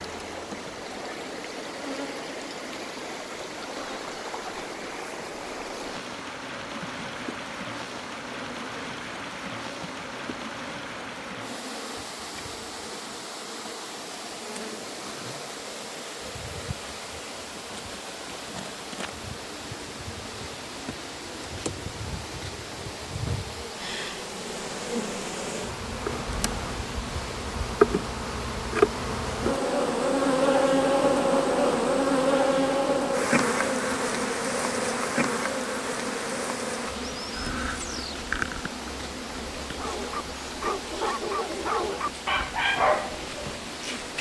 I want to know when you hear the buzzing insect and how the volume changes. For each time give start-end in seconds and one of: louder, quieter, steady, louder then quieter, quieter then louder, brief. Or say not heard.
0.0-44.1 louder then quieter.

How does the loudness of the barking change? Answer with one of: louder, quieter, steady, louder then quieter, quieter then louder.
louder then quieter.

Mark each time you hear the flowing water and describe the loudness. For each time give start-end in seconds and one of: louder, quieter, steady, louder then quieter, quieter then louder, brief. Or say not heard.
0.0-44.1 steady.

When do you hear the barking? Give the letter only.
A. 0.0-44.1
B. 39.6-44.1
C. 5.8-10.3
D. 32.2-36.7
B.